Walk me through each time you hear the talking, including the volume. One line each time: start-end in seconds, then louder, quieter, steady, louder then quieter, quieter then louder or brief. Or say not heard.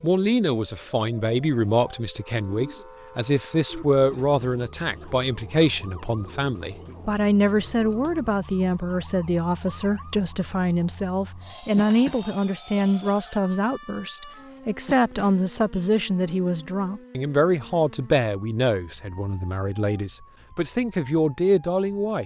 0.0-22.2 steady.